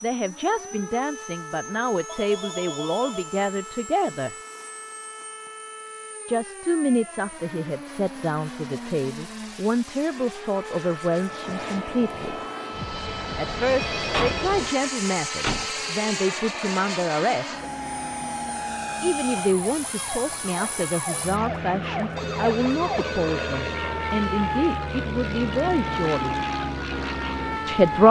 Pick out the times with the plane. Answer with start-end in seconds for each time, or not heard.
0.0-28.0.